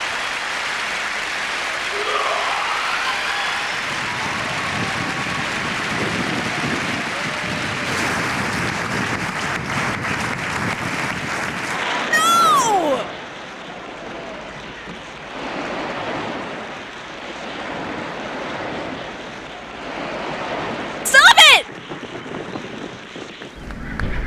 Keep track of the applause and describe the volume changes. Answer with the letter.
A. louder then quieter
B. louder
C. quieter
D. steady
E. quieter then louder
C.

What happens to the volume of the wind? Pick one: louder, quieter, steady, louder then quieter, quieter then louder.
steady.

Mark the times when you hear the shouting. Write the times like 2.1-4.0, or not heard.
1.9-3.6, 12.1-13.1, 21.1-21.6.